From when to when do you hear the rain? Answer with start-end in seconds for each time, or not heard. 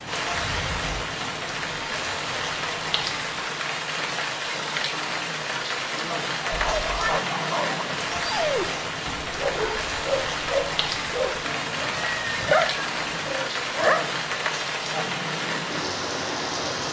0.0-16.8.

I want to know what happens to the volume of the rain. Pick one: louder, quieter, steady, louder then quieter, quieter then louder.
steady.